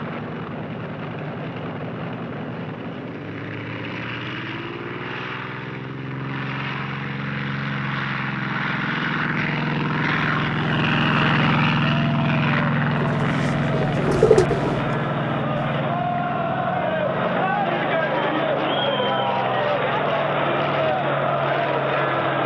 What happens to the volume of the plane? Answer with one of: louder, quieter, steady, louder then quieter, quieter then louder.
louder then quieter.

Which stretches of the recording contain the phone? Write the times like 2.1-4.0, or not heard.
not heard.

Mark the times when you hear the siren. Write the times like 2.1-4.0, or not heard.
not heard.